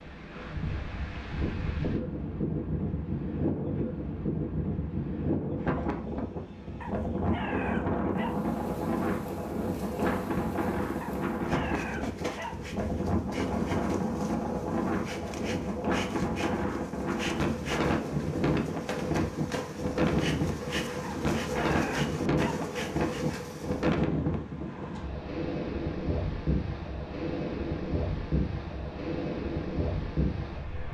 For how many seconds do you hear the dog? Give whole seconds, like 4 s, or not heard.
5 s.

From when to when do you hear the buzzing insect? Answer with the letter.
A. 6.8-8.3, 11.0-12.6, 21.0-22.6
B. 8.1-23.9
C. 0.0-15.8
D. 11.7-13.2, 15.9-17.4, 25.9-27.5
B.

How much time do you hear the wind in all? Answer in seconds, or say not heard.
31 s.